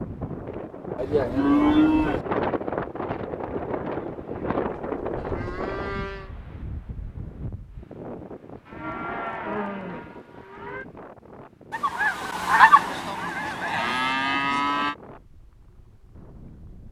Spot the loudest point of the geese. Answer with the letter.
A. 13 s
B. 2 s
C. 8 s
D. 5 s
A.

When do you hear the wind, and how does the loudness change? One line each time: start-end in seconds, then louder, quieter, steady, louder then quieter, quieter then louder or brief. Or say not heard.
0.0-16.8 quieter.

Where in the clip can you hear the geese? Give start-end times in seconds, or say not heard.
11.7-13.9.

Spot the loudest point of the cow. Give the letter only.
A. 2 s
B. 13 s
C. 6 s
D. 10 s
A.